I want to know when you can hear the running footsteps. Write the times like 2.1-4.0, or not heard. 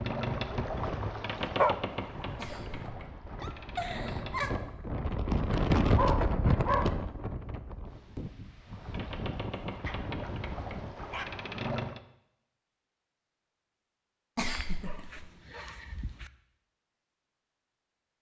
not heard.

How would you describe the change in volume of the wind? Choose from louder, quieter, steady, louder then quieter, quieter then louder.
louder then quieter.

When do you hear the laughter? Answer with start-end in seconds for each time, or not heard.
2.4-4.5, 14.3-15.2.